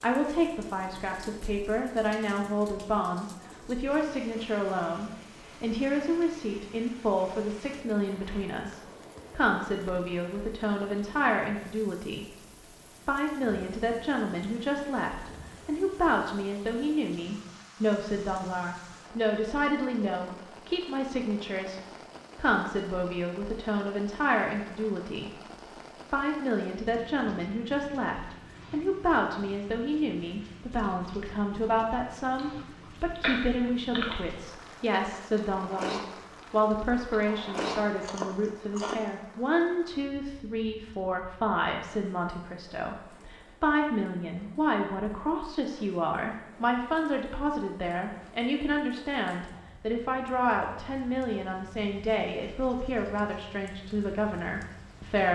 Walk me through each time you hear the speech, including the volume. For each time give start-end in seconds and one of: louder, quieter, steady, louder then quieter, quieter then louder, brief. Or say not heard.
0.0-12.4 steady
13.1-25.4 steady
26.1-55.3 steady.